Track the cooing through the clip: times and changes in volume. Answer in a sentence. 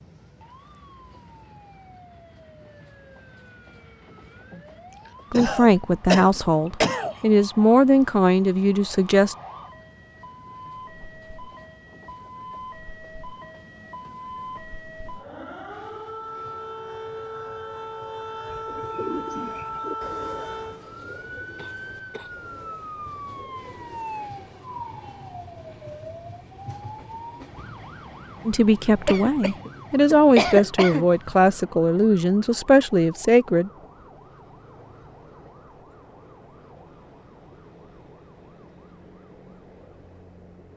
The cooing can be heard from 18.4 to 24.3 s, getting quieter.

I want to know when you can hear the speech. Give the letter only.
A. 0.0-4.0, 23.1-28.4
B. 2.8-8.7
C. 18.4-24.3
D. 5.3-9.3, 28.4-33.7
D.